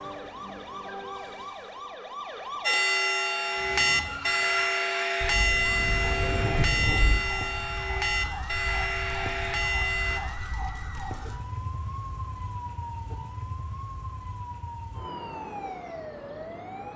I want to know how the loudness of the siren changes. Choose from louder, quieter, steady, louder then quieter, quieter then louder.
steady.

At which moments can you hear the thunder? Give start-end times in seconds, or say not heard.
5.2-7.2.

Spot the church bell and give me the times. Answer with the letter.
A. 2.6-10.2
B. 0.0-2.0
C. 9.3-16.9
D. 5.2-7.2
A.